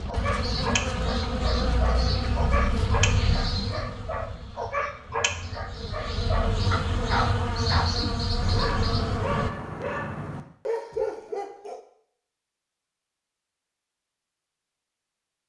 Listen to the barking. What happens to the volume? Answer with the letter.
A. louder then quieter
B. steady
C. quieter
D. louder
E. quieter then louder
B.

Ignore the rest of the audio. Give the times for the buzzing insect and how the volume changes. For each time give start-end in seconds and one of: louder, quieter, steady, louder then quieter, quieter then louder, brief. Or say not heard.
0.0-9.5 quieter then louder.